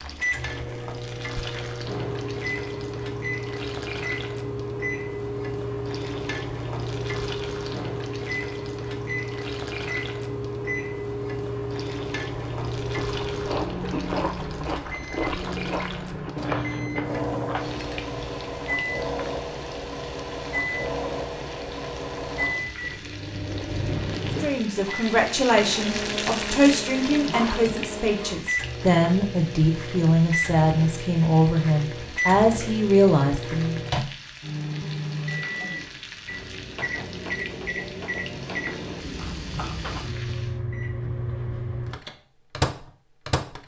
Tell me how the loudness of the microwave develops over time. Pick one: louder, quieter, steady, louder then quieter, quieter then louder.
steady.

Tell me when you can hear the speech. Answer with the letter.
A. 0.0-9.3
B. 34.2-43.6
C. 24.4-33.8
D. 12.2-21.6
C.